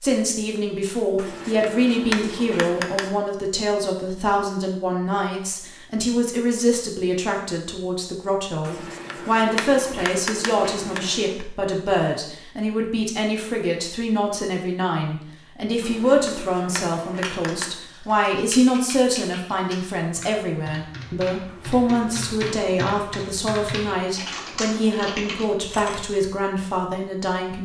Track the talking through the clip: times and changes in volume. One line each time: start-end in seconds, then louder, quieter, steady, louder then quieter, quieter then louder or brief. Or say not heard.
0.0-27.6 steady.